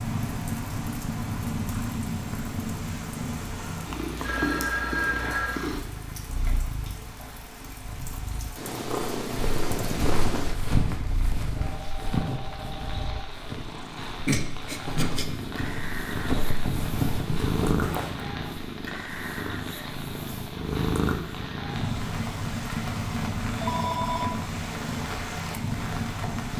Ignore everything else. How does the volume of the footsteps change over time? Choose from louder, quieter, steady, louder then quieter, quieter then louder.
quieter then louder.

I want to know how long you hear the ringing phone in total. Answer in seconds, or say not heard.
4 s.